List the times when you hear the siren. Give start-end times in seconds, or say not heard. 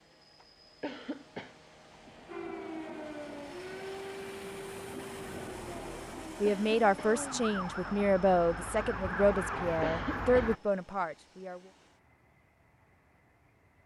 2.2-10.6.